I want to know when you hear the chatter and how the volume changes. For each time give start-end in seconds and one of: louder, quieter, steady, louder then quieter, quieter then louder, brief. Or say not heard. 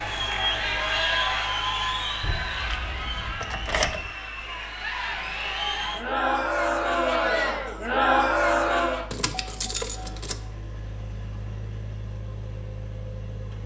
0.0-9.1 quieter then louder.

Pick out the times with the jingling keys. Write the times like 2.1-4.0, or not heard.
2.2-4.2, 9.1-10.4.